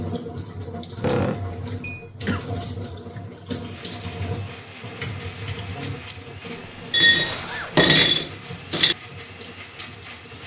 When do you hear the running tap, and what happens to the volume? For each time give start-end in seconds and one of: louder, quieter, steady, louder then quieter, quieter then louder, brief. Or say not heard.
0.0-10.4 quieter.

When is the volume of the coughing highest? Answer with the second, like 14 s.
1 s.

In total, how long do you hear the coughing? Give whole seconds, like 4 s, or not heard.
3 s.